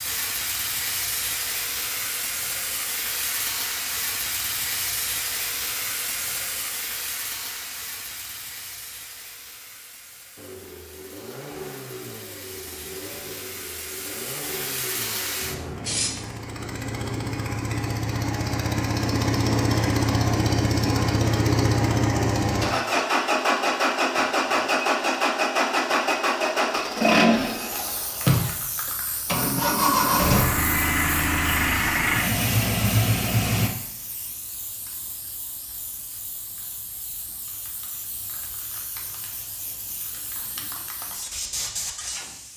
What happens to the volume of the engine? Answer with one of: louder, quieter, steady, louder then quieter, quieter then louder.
louder.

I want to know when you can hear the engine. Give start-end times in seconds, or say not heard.
10.3-33.7.